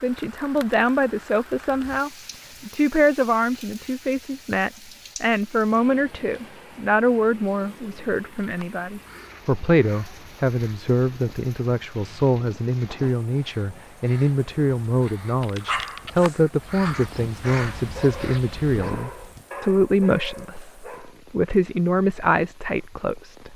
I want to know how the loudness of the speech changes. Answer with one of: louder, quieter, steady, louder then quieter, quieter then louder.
steady.